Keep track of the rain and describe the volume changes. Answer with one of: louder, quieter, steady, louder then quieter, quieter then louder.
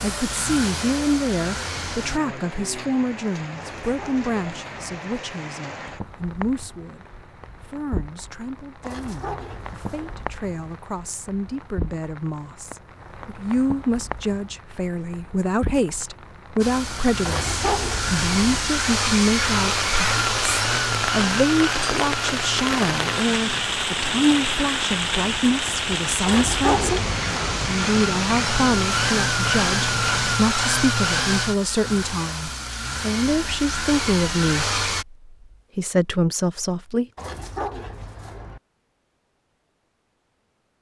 louder.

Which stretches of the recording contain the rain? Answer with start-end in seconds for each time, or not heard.
0.0-30.4.